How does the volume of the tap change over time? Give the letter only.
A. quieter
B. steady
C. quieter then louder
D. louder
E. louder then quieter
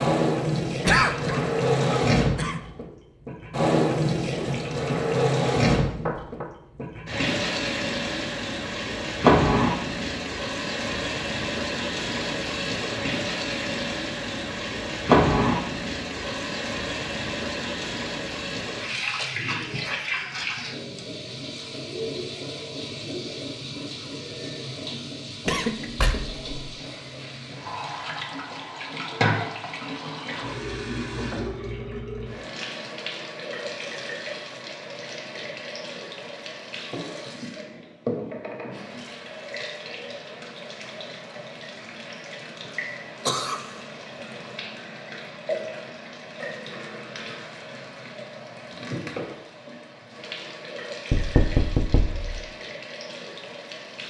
A.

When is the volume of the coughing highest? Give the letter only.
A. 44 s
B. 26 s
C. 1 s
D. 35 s
C.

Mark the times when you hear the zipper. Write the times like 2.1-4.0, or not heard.
not heard.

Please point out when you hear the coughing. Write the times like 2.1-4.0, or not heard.
0.8-2.5, 25.4-26.4, 42.6-43.7.